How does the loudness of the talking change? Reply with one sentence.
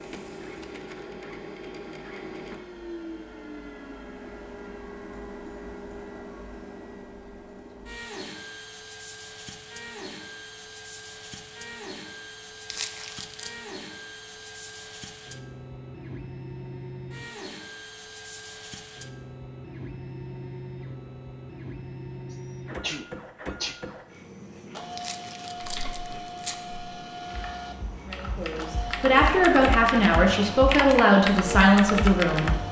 The volume of the talking stays about the same.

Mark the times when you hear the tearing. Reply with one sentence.
The tearing can be heard from 12.7 to 13.6 s and from 24.9 to 26.6 s.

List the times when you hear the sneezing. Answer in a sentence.
You can hear the sneezing from 22.3 to 23.8 s.